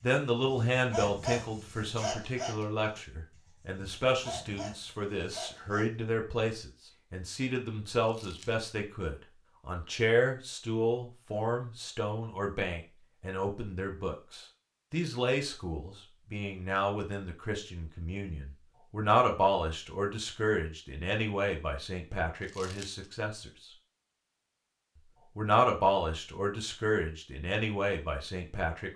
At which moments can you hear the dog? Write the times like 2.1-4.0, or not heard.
0.0-5.8.